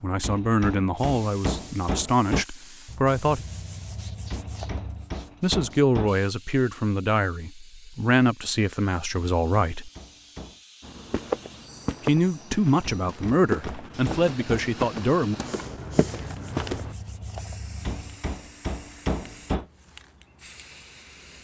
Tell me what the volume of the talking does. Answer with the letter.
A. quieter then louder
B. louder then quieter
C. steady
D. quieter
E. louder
C.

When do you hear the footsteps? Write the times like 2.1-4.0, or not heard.
10.8-16.9.